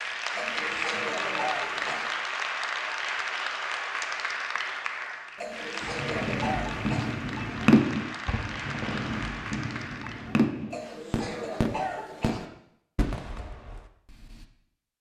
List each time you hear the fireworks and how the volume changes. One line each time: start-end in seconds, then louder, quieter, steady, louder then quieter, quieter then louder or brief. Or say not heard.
5.8-14.4 quieter.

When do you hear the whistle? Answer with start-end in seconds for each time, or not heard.
not heard.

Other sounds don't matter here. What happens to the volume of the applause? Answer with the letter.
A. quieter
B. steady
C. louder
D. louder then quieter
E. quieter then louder
A.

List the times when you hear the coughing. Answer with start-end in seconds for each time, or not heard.
0.3-2.1, 5.3-7.2, 10.7-12.4.